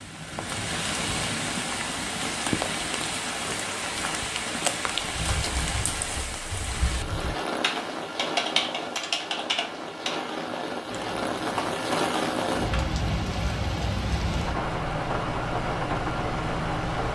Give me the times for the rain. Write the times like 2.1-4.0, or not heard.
0.0-17.1.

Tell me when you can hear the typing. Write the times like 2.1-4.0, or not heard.
5.1-12.9.